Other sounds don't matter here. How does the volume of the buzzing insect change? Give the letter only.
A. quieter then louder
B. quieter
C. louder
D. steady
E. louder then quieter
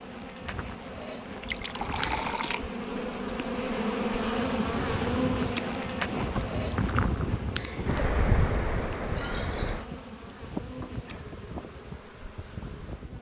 E.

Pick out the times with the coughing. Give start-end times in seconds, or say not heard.
not heard.